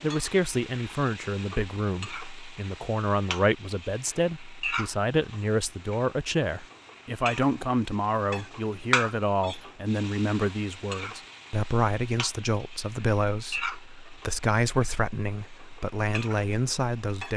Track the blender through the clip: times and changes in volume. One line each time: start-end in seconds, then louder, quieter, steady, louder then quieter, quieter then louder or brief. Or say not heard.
not heard.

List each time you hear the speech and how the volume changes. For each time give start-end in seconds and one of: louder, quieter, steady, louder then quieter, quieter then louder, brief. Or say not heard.
0.0-17.3 steady.